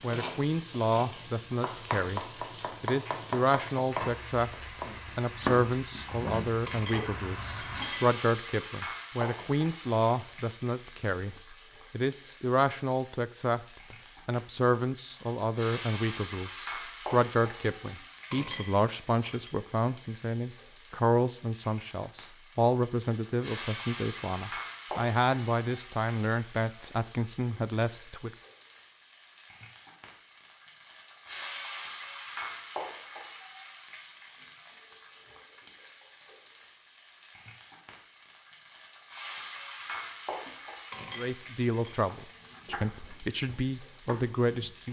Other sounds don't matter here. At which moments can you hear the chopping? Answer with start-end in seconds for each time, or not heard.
0.0-6.1, 42.1-44.8.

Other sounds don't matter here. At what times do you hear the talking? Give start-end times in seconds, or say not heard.
0.0-2.2, 2.8-28.3, 41.1-44.8.